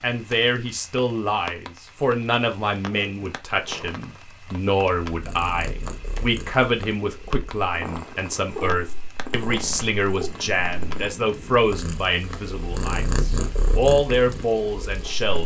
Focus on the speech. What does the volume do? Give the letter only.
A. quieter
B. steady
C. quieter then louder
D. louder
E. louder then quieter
B.